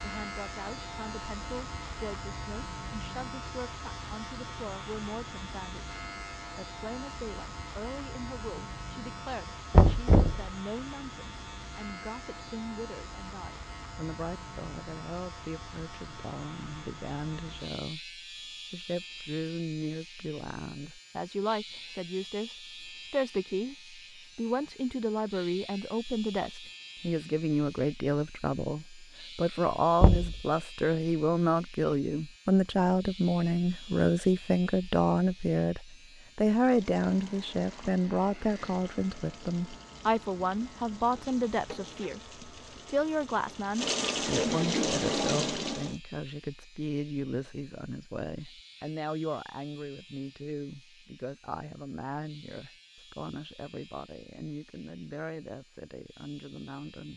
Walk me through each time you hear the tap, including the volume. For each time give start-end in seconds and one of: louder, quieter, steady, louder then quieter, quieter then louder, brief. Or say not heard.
36.5-46.0 louder.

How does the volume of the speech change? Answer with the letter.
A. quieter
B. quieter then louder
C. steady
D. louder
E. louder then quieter
E.